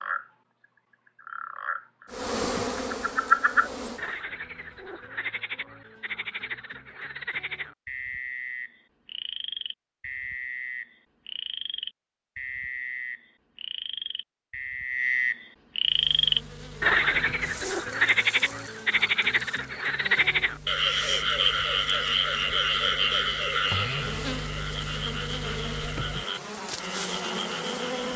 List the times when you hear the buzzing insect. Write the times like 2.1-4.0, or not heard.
2.1-4.2, 15.8-28.1.